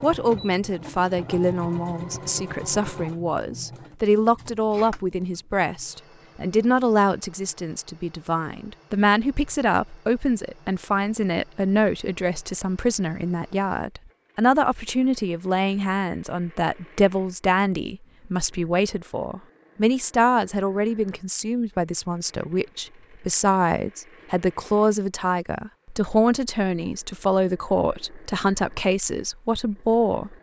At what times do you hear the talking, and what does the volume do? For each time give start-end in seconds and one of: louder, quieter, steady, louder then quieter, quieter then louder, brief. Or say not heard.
0.0-30.3 steady.